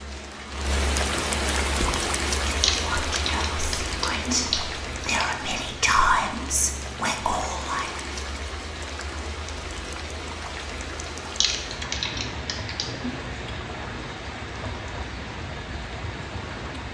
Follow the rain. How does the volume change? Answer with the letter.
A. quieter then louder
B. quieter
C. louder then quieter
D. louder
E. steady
B.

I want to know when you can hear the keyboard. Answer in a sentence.
The keyboard can be heard from 2.6 to 5.3 s and from 11.4 to 13.2 s.